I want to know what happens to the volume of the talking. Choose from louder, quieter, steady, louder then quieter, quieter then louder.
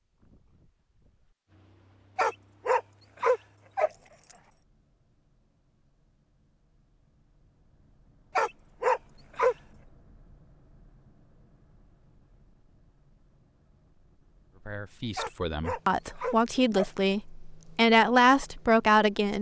louder.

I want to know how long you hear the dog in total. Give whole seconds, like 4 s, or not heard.
5 s.